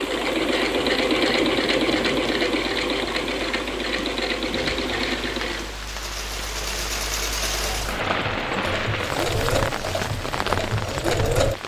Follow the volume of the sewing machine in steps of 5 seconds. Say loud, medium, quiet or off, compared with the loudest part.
loud, medium, loud.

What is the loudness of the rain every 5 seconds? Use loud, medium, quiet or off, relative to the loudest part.
medium, loud, loud.